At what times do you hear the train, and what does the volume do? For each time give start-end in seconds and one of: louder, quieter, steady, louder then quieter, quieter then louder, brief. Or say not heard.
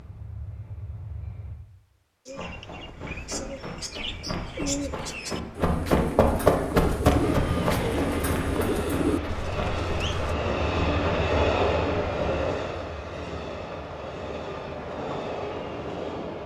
0.0-1.6 brief
7.2-16.4 louder then quieter.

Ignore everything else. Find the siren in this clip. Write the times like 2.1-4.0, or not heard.
not heard.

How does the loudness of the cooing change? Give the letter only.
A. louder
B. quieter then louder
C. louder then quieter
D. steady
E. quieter
A.